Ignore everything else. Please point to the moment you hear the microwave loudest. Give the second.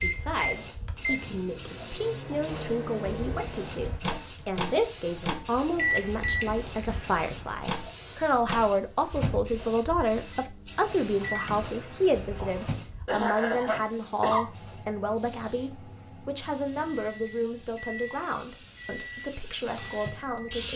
6 s.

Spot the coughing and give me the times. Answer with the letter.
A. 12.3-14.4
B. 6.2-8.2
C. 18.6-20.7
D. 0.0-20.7
A.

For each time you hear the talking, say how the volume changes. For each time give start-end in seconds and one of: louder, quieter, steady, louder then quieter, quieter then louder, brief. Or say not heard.
0.0-20.7 louder then quieter.